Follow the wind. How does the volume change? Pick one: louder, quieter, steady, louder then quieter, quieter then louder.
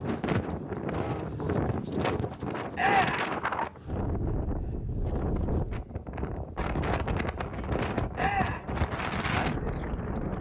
steady.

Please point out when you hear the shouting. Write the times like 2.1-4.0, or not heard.
2.8-3.3, 8.2-8.7.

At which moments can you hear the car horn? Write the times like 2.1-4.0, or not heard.
not heard.